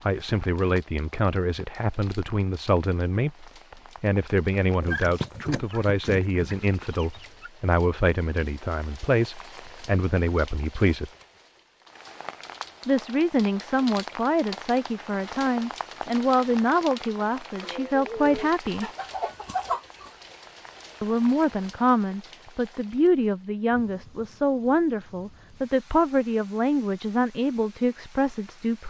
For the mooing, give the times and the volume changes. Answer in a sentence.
The mooing can't be heard in this clip.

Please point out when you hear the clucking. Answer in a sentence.
The clucking can be heard from 4.8 to 7.5 s and from 17.6 to 20.1 s.